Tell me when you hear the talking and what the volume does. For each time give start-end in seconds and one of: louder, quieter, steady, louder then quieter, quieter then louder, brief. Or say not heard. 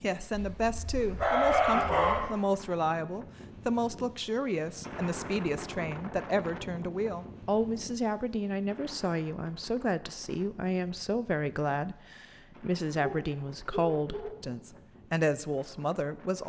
0.0-16.4 steady.